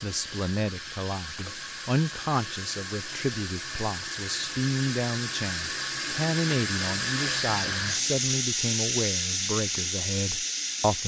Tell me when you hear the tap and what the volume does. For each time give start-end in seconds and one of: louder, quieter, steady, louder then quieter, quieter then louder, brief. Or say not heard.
0.0-11.0 louder.